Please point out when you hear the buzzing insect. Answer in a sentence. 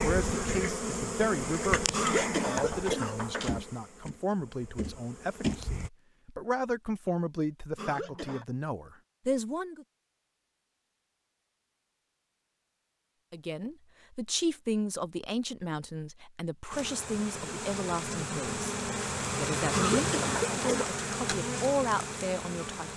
The buzzing insect can be heard from 0.0 to 5.9 s and from 16.7 to 22.9 s.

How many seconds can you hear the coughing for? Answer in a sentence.
The coughing can be heard for 4 seconds in total.